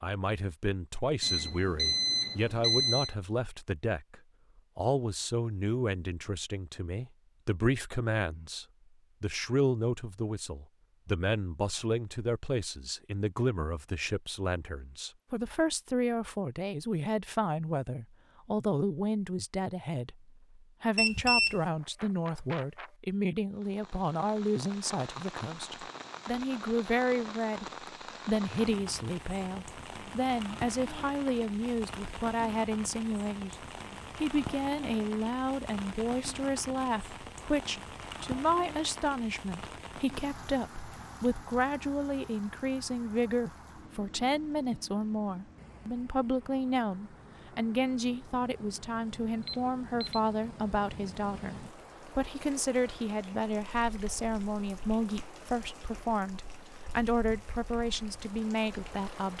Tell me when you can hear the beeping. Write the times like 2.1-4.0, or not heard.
1.2-3.1, 20.9-22.9, 49.5-50.2.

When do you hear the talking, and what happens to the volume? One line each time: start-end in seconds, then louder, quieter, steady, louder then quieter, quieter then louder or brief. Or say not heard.
0.0-27.6 steady
28.2-33.5 steady
34.1-59.3 steady.